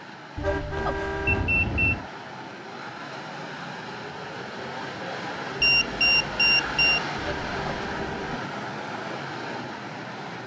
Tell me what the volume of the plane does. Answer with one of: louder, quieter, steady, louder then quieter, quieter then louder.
louder.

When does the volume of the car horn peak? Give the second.
1 s.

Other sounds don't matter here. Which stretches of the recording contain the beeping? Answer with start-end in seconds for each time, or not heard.
1.2-2.0, 5.6-7.0.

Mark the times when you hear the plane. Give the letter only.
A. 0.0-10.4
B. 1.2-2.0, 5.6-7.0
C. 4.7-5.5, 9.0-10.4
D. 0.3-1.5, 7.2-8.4
A.